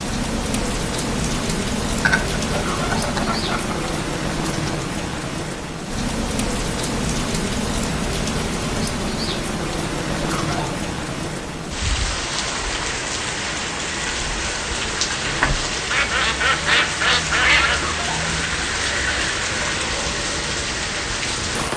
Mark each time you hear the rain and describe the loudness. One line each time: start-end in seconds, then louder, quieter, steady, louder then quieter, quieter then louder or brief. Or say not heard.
0.0-21.7 steady.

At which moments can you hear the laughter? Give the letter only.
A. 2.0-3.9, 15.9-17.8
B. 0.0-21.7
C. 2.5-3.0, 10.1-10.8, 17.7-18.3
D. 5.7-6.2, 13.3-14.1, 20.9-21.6
C.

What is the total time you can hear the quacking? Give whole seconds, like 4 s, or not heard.
4 s.